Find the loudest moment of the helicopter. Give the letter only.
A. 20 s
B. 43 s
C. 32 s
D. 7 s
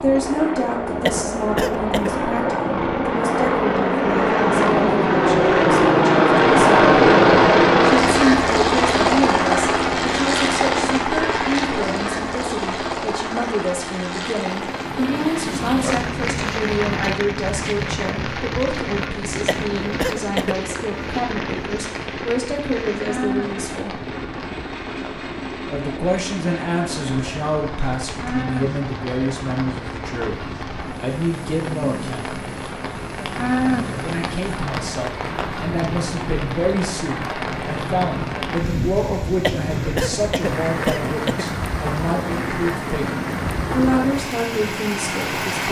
D.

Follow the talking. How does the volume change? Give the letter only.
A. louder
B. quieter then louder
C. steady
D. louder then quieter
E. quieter
C.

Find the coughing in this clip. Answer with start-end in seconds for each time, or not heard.
1.1-2.1, 19.4-20.6, 39.4-41.5.